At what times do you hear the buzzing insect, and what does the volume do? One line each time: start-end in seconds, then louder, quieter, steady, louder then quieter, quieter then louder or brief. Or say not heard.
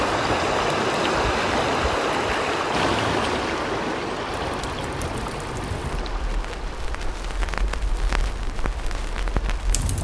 not heard.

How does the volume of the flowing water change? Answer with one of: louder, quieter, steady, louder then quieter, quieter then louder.
quieter.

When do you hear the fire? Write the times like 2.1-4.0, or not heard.
4.2-10.0.